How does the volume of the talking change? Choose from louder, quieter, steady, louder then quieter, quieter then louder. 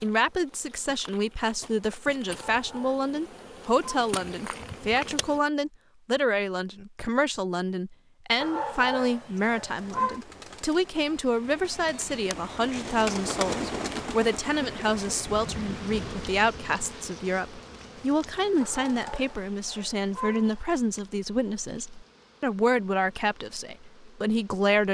steady.